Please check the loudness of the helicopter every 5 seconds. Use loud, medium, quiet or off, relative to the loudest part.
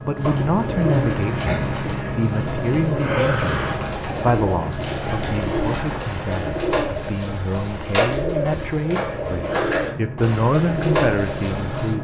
loud, medium, loud.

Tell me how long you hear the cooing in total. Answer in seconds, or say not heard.
12 s.